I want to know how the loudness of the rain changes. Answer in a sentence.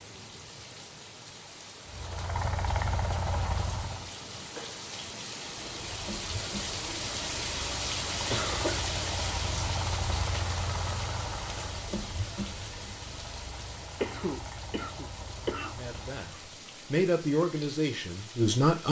The volume of the rain goes up, then down.